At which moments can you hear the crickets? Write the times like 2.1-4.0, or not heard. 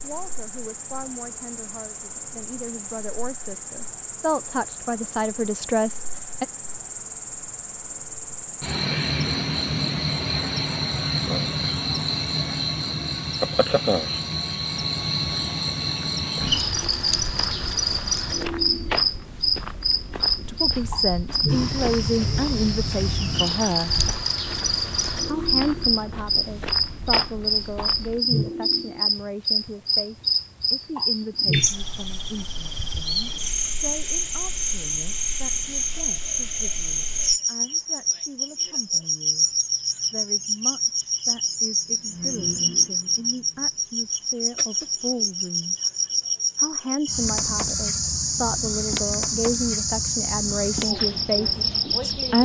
0.0-52.4.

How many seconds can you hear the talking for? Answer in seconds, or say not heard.
36 s.